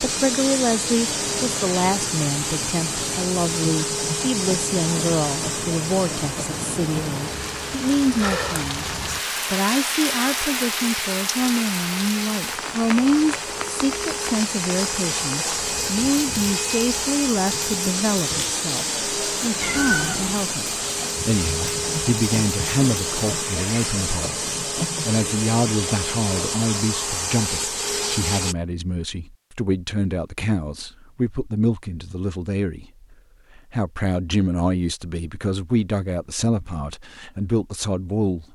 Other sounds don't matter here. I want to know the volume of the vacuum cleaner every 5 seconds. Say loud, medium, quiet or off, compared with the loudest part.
loud, medium, medium, loud, loud, loud, off, off.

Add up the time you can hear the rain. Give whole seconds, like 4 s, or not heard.
24 s.